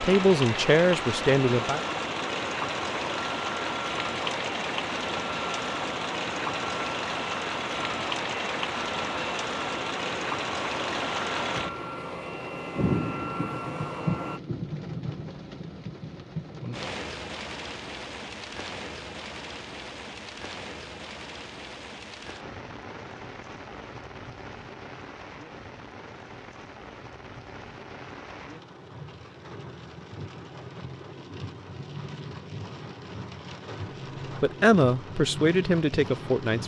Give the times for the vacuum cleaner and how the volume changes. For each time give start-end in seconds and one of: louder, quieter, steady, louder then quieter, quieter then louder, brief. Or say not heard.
0.0-14.4 steady.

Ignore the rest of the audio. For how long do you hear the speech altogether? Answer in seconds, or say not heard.
4 s.